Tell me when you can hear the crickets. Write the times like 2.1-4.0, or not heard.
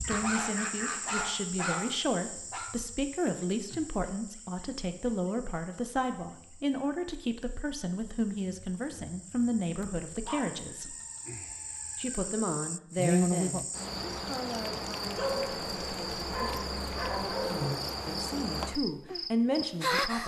0.0-20.2.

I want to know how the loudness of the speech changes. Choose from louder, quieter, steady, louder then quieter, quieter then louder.
steady.